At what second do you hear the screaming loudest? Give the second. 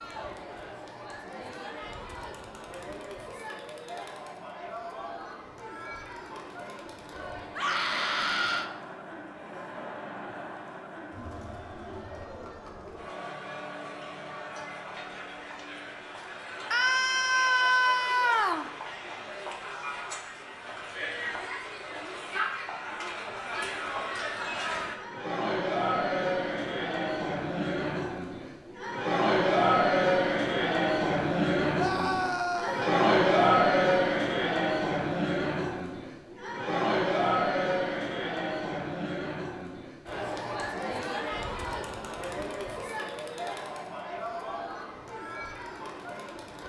18 s.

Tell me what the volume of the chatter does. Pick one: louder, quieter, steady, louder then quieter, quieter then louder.
louder then quieter.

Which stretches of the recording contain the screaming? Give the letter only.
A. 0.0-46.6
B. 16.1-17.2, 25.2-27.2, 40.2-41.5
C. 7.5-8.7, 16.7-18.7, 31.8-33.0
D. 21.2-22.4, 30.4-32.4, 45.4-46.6
C.